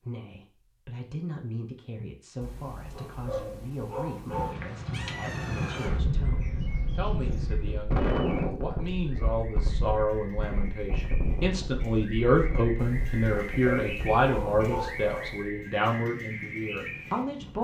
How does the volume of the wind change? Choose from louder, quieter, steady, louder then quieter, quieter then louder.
quieter.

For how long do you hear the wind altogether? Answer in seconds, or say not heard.
13 s.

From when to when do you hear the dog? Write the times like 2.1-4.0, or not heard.
2.4-4.5, 12.8-15.4.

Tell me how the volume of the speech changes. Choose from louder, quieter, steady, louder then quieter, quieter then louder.
louder.